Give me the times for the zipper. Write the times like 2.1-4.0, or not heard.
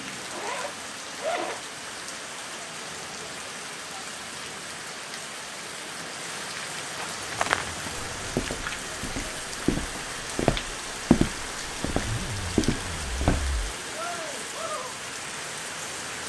0.2-1.6, 11.8-13.8.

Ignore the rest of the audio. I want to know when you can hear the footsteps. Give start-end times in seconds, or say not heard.
7.0-13.5.